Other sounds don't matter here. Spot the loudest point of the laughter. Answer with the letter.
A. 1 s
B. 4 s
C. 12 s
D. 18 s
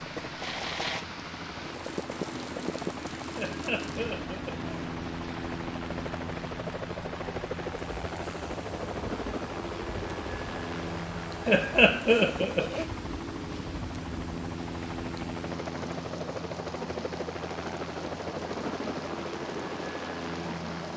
C.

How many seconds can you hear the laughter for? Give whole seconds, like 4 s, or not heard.
3 s.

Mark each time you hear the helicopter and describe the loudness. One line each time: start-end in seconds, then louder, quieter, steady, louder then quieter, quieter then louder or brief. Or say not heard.
0.0-20.9 steady.